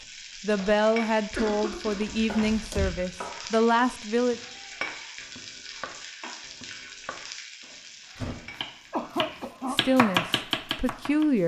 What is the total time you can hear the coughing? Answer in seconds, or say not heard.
2 s.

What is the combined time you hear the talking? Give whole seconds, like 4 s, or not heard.
6 s.